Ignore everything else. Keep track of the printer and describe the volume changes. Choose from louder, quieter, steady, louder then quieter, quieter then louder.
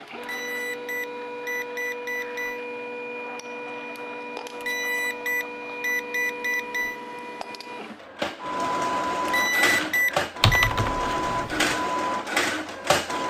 louder.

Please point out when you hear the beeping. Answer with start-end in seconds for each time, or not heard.
0.2-2.6, 4.6-7.0, 9.2-10.7.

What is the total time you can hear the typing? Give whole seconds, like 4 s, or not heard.
2 s.